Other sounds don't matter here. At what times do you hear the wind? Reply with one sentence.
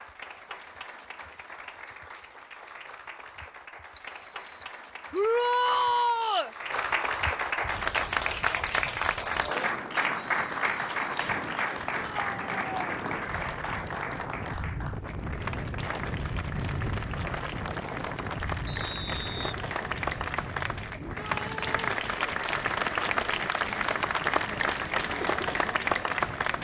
The wind can be heard from 7.6 to 26.6 s.